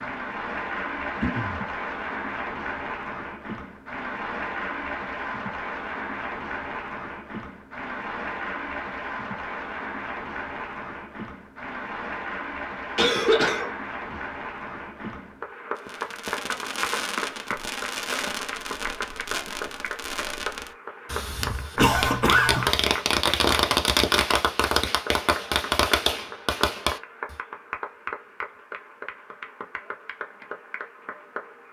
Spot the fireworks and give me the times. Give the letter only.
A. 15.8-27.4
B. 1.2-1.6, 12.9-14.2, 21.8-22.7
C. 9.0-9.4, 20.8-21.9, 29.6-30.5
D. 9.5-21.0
A.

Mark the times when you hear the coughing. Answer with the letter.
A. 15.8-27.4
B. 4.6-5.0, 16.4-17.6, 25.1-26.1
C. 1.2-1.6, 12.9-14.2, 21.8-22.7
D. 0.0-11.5
C.